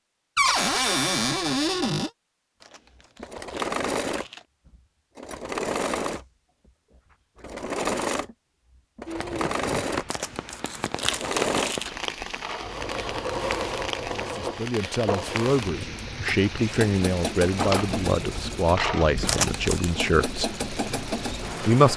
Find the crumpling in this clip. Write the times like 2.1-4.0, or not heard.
2.6-4.5, 10.1-11.9, 19.2-19.9.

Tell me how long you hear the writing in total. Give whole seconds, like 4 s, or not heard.
not heard.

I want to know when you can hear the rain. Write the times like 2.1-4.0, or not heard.
9.1-21.9.